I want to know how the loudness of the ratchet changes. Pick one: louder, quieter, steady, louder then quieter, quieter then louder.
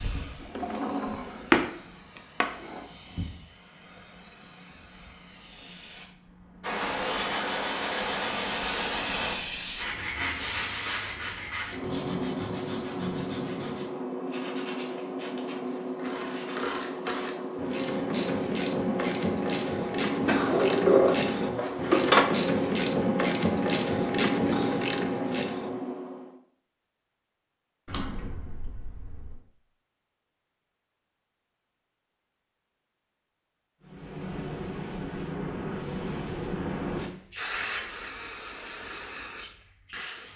louder.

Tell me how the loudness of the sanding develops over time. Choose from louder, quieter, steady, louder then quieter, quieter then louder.
quieter.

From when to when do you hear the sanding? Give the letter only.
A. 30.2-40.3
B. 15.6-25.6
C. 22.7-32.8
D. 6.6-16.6
D.